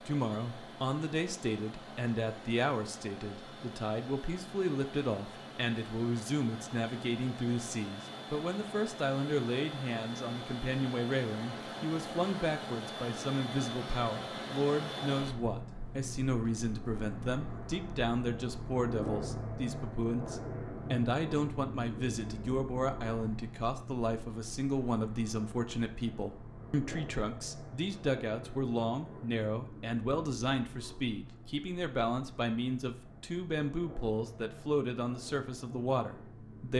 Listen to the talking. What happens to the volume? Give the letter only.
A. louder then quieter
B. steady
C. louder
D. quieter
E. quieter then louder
B.